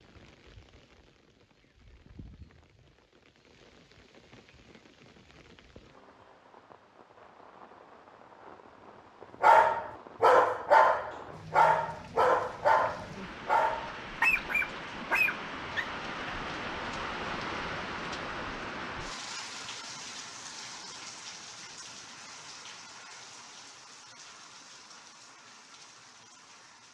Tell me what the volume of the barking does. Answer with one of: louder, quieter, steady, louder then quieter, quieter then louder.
quieter.